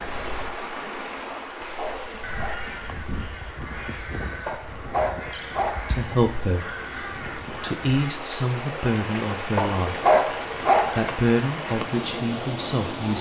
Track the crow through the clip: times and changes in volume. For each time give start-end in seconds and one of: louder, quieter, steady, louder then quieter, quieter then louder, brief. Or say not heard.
2.2-8.2 steady.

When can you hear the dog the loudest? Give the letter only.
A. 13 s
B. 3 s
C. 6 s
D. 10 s
D.